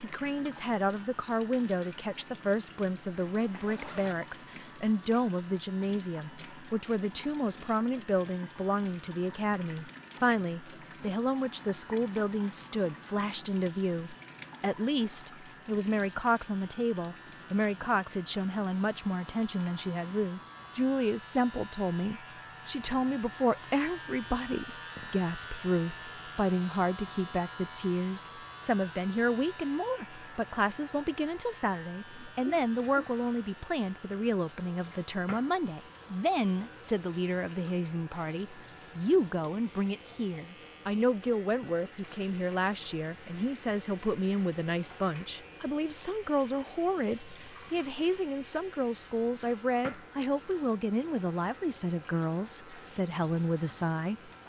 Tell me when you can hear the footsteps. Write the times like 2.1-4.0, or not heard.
not heard.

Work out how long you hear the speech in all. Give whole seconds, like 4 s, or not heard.
54 s.